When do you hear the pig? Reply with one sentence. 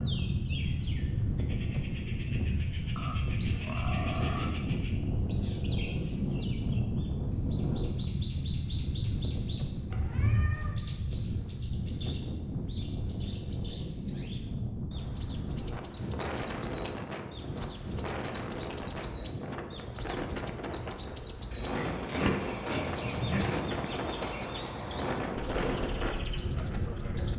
You can hear the pig from 3.0 to 4.6 s and from 21.5 to 23.6 s.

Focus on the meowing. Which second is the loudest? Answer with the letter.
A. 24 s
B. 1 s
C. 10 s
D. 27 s
C.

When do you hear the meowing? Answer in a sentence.
You can hear the meowing from 9.9 to 10.8 s and from 23.0 to 23.4 s.